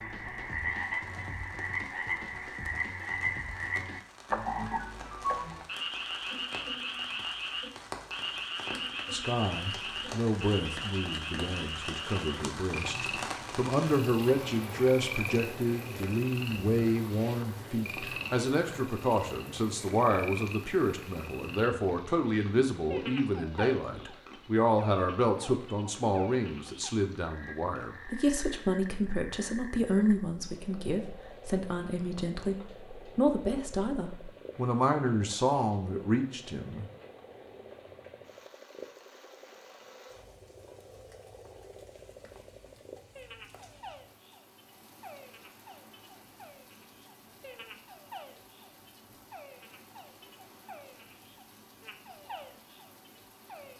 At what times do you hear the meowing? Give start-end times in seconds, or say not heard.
not heard.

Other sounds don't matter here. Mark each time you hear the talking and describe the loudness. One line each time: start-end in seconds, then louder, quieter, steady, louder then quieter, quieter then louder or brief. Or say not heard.
9.1-36.9 steady.